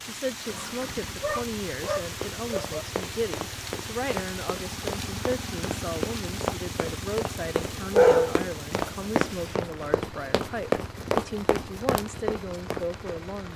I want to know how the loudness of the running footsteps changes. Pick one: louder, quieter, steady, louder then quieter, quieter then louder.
louder.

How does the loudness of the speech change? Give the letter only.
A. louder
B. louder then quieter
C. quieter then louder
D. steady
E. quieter
D.